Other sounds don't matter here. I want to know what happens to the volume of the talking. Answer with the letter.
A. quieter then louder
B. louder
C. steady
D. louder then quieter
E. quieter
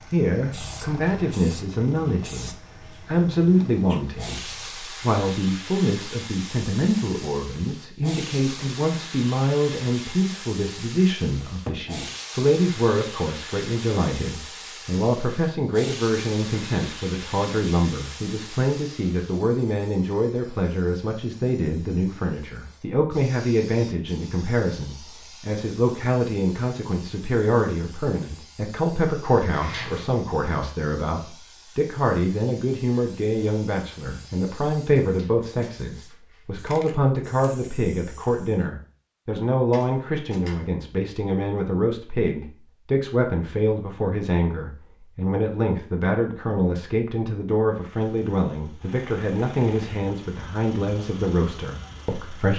C.